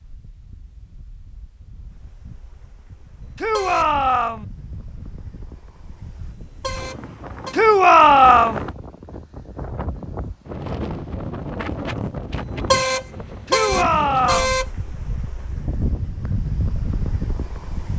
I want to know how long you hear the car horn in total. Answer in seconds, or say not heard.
4 s.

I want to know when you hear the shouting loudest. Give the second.
8 s.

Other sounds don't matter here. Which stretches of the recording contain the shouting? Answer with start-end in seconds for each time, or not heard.
3.4-4.5, 7.5-8.6, 13.4-14.6.